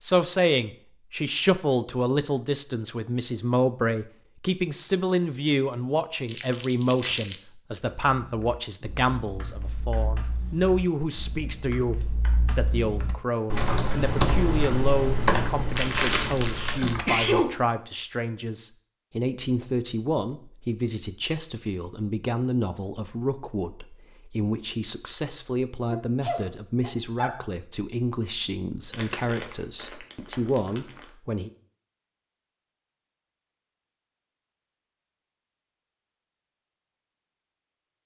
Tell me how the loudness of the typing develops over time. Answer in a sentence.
The volume of the typing goes up, then down.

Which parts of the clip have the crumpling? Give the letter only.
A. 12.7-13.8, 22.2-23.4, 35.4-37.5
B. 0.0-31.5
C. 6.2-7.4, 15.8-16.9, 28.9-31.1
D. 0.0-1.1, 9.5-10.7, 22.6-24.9
C.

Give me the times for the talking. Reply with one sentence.
You can hear the talking from 0.0 to 31.5 s.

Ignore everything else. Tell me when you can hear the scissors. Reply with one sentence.
The scissors can't be heard in this clip.